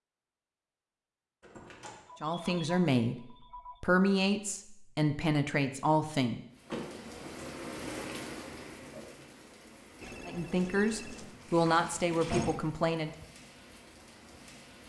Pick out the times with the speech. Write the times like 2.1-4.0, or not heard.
2.2-6.4, 10.2-13.1.